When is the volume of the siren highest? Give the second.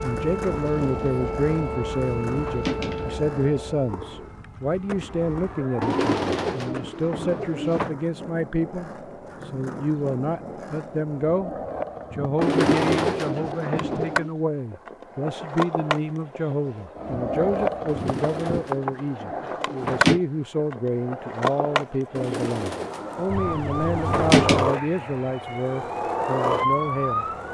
27 s.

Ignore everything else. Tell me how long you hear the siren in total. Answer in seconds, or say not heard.
10 s.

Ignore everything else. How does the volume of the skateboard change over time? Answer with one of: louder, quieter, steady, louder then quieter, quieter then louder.
louder.